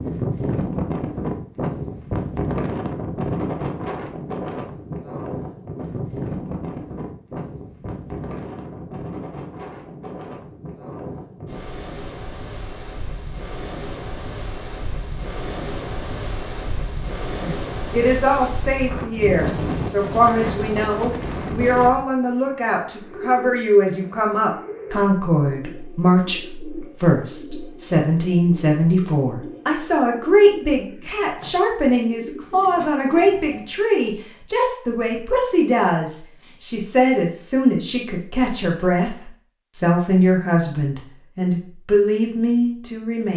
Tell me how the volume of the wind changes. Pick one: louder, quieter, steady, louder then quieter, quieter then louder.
quieter then louder.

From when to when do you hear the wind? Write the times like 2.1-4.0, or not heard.
0.0-22.1.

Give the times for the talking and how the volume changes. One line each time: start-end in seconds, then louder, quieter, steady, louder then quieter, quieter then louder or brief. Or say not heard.
17.4-43.3 steady.